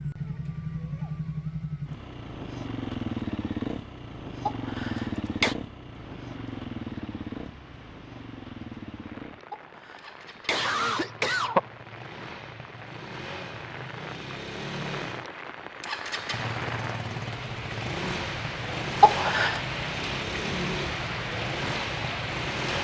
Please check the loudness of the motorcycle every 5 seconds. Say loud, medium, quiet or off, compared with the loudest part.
loud, loud, medium, loud, loud.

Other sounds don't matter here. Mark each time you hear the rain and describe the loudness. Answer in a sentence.
You can hear the rain from 5.8 to 22.7 s, getting louder.